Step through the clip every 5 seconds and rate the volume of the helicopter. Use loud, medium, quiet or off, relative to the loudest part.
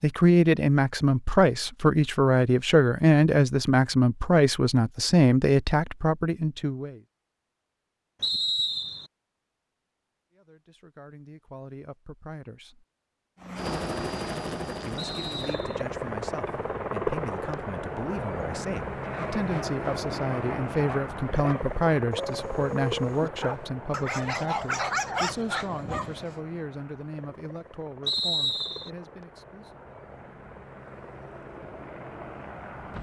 off, off, loud, loud, loud, quiet, medium.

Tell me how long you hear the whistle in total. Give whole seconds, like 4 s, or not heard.
3 s.